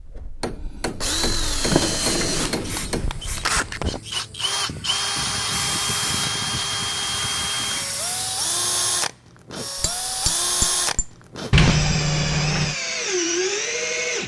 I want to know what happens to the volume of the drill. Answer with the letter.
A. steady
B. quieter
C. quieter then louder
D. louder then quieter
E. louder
A.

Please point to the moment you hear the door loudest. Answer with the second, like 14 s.
12 s.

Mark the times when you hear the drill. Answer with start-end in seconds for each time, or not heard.
0.0-14.2.